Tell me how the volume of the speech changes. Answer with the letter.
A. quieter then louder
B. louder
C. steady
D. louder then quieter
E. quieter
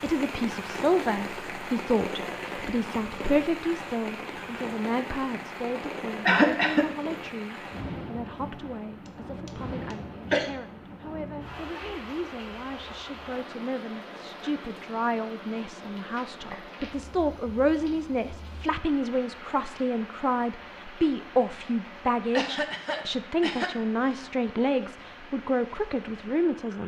A.